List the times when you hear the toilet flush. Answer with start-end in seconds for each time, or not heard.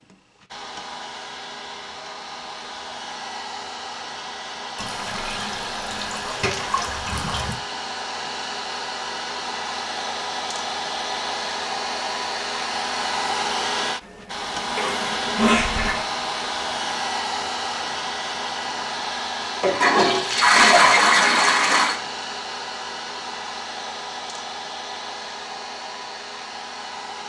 4.8-7.5, 14.6-16.0, 19.6-21.9.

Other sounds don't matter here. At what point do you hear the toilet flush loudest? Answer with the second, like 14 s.
21 s.